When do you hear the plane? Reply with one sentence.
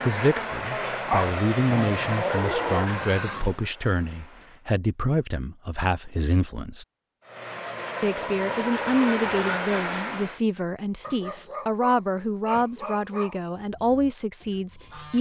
You can hear the plane from 0.0 to 4.7 s and from 7.2 to 10.4 s.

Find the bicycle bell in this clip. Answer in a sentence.
The bicycle bell can't be heard in this clip.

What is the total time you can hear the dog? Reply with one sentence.
The dog can be heard for 5 seconds in total.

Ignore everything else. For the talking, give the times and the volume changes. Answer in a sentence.
The talking can be heard from 0.1 to 6.8 s, at a steady volume; and from 8.0 to 15.1 s, at a steady volume.